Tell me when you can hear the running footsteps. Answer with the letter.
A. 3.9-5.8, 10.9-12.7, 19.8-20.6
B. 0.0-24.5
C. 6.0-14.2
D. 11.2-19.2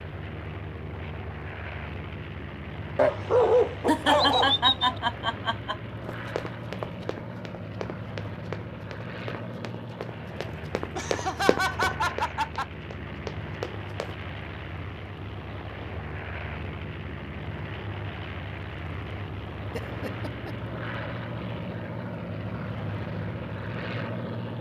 C.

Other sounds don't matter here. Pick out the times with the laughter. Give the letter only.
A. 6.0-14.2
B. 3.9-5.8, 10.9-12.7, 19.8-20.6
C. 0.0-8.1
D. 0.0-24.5
B.